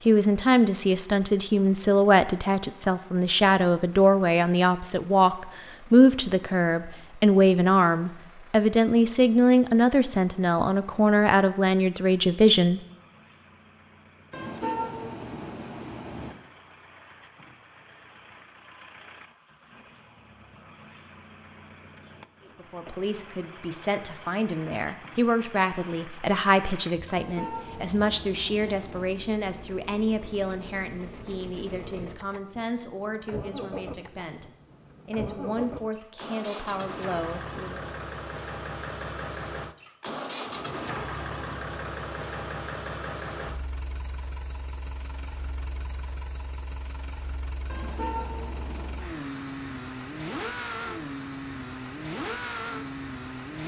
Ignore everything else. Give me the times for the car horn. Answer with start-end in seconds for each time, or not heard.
14.3-16.4, 27.1-29.1, 47.6-49.0.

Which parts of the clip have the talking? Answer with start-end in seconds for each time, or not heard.
0.1-12.8, 22.4-37.9.